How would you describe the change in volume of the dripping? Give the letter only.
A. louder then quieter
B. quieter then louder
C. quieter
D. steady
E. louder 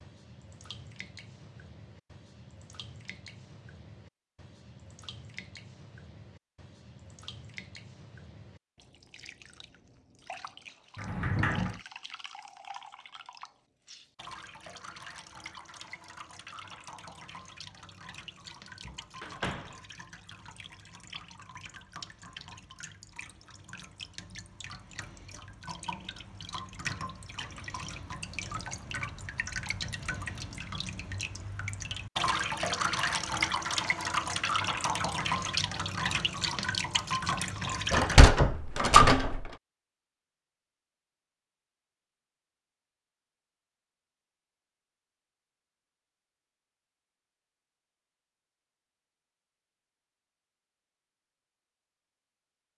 E.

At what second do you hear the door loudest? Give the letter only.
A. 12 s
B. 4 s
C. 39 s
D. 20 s
C.